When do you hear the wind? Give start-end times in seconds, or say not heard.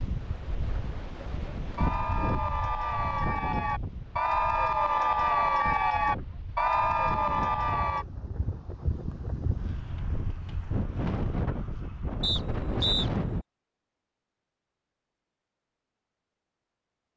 0.0-13.4.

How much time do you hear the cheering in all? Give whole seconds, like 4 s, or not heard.
6 s.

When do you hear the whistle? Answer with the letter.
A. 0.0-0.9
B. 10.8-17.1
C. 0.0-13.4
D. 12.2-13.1
D.